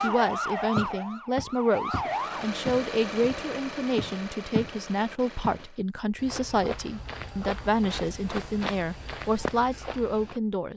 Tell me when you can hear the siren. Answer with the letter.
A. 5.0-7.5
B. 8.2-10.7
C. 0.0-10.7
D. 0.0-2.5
D.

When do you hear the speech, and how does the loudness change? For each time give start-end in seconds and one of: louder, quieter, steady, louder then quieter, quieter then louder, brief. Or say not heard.
0.0-10.7 steady.